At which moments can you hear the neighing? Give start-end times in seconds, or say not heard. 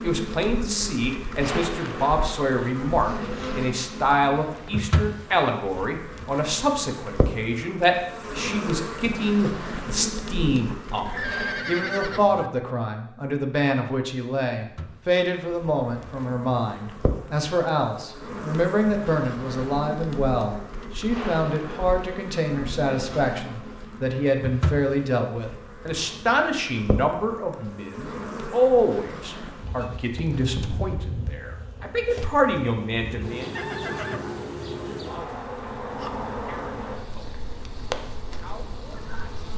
11.1-12.5, 33.5-34.2.